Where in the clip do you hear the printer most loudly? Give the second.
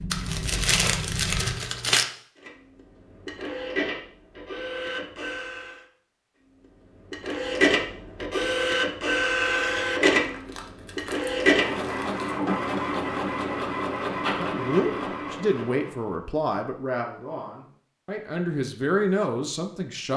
10 s.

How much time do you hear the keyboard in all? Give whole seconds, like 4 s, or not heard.
2 s.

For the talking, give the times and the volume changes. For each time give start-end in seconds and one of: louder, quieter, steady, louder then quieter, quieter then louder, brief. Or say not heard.
14.3-20.1 quieter then louder.